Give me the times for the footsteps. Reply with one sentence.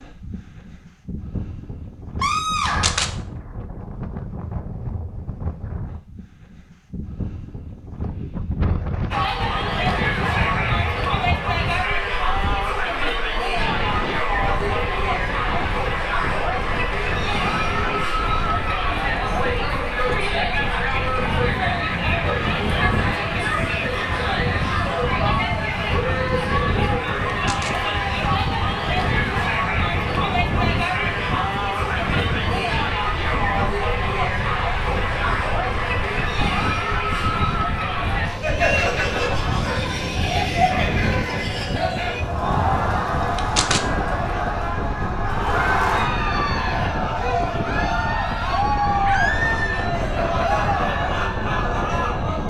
The footsteps can't be heard in this clip.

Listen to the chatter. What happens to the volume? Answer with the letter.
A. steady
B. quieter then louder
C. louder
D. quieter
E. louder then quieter
A.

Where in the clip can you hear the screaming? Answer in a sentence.
The screaming can be heard from 2.2 to 3.0 s and from 49.0 to 49.9 s.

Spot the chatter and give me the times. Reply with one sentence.
The chatter can be heard from 9.1 to 52.4 s.